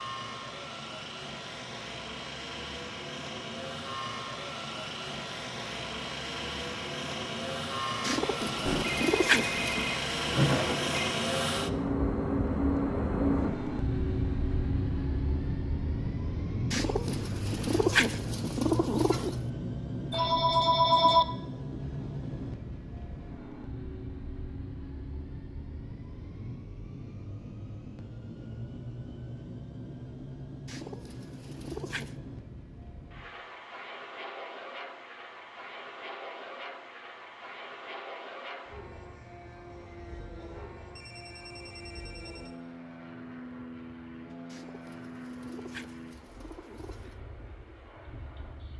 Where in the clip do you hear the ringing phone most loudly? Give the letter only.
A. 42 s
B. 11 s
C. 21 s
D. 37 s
C.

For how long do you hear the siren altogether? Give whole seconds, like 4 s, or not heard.
not heard.